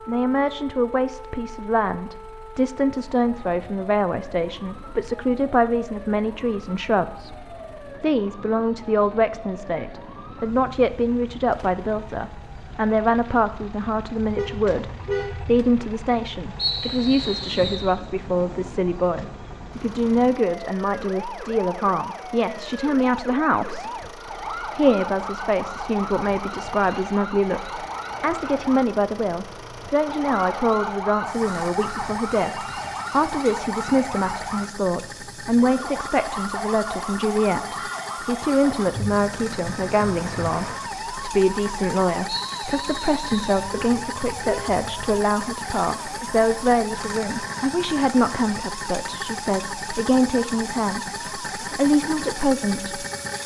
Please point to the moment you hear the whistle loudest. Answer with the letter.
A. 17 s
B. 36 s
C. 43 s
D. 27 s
A.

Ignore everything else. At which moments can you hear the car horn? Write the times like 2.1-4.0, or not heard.
14.2-15.7, 43.5-45.2.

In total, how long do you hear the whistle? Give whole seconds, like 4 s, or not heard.
3 s.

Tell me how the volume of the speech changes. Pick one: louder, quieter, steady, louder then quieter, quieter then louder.
steady.